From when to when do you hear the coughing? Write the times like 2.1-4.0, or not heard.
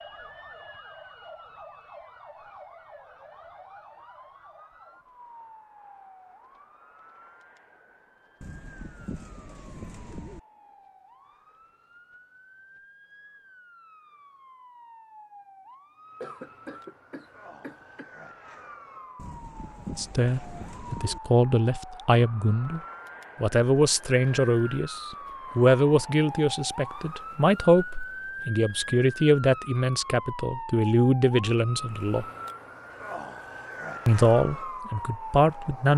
16.2-18.1.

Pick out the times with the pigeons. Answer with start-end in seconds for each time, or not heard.
8.4-10.4, 19.1-21.2.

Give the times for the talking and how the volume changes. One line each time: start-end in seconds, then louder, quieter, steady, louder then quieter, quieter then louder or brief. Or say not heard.
19.9-22.8 brief
23.4-32.2 steady
34.0-35.9 brief.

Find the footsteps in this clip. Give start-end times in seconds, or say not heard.
not heard.